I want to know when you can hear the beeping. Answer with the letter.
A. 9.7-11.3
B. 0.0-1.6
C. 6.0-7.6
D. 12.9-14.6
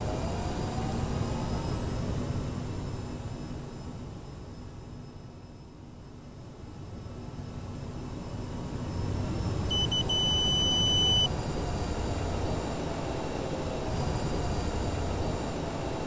A.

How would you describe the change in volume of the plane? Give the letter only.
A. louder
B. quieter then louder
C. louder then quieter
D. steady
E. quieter
B.